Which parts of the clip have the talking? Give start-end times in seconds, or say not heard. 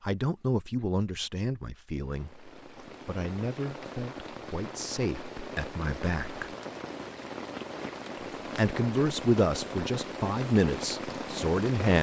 0.0-6.5, 8.6-11.9.